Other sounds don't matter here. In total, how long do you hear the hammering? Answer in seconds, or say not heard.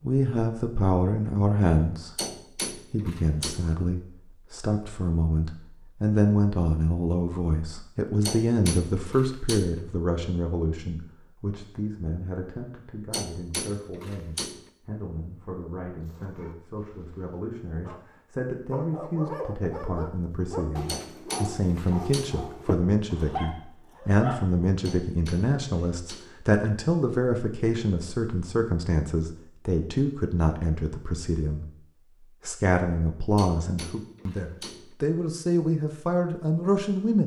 9 s.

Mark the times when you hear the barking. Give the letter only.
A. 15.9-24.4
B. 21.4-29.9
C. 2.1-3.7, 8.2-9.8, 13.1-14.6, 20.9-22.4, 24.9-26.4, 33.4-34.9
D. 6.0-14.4
A.